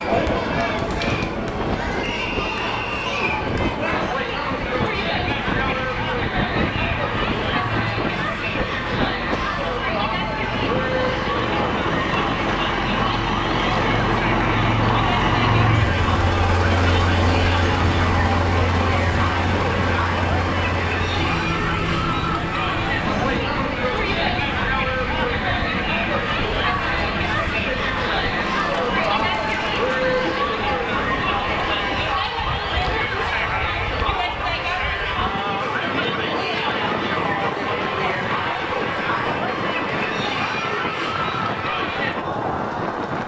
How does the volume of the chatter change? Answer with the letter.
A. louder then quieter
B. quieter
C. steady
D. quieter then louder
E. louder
C.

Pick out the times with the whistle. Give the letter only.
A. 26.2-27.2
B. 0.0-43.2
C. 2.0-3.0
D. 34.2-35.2
C.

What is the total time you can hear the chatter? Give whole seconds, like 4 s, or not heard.
43 s.